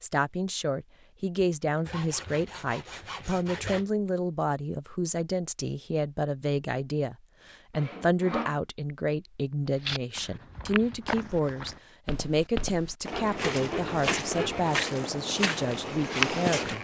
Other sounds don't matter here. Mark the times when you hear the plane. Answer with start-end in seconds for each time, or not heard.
not heard.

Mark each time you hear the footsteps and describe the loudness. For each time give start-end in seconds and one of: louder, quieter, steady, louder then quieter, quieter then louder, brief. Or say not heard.
9.8-16.7 louder.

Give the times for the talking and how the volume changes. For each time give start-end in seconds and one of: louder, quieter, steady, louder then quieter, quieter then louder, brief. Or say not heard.
0.0-16.7 steady.